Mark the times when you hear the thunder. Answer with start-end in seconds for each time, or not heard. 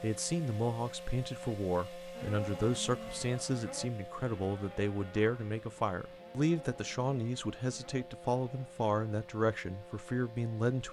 not heard.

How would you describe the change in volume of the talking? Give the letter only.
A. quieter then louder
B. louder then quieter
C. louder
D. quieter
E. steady
E.